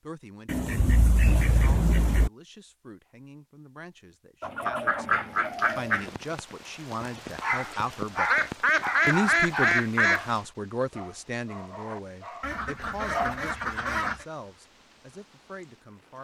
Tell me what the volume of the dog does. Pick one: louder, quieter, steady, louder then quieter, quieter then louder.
quieter.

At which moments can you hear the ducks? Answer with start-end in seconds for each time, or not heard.
0.5-2.3, 4.4-6.1, 8.2-10.2, 12.4-14.2.